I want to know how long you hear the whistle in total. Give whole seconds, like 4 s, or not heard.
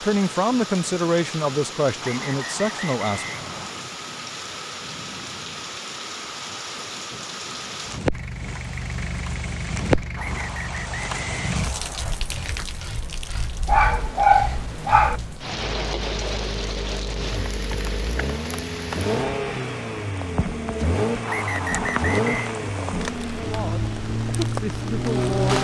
5 s.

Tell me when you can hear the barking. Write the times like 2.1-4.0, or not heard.
13.7-15.2.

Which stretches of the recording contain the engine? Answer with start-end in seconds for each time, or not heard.
8.1-25.5.